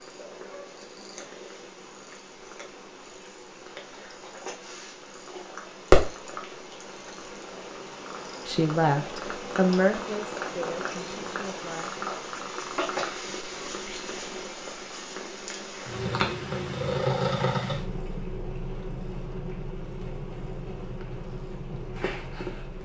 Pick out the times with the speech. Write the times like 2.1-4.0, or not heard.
8.4-11.9.